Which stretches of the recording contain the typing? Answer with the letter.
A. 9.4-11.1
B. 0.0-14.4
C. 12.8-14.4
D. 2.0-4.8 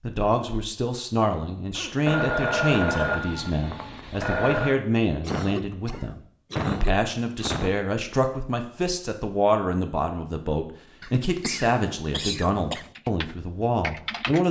C.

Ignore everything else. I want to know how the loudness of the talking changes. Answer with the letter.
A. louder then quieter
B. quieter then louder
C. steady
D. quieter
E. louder
C.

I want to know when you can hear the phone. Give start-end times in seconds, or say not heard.
2.0-4.8.